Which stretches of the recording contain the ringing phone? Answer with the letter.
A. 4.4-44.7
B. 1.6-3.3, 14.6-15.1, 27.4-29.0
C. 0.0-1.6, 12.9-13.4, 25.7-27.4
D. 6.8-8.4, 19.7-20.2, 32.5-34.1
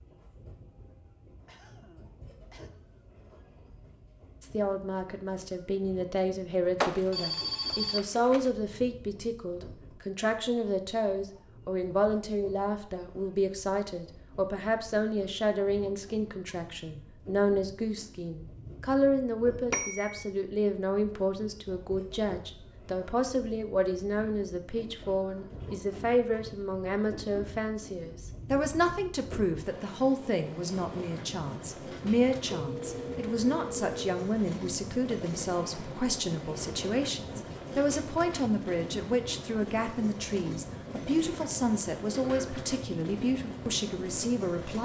D.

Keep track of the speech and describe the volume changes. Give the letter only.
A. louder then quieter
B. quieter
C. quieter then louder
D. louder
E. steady
E.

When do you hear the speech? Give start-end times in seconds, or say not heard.
4.4-44.7.